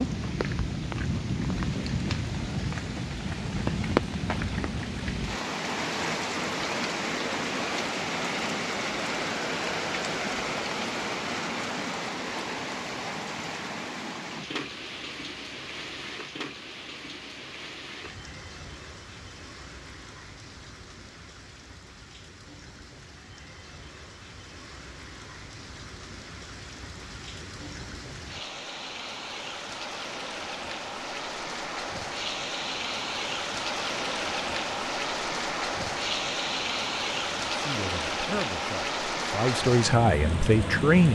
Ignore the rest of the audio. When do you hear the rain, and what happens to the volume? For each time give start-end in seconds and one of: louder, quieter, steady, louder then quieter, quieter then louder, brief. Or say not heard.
0.0-41.1 quieter then louder.